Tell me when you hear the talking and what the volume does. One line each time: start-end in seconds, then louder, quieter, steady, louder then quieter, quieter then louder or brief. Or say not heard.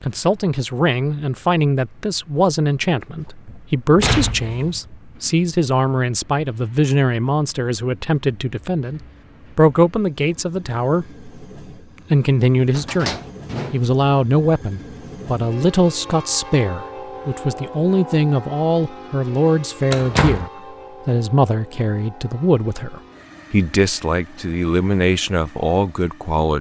0.0-11.3 steady
12.1-26.5 steady.